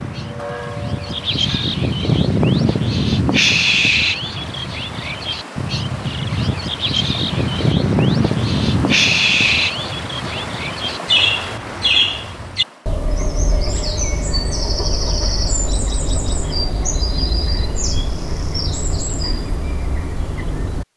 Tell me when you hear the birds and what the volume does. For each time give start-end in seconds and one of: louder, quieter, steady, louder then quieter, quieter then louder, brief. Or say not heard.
0.0-20.9 quieter.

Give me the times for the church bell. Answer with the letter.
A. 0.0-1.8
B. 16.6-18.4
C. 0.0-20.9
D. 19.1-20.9
A.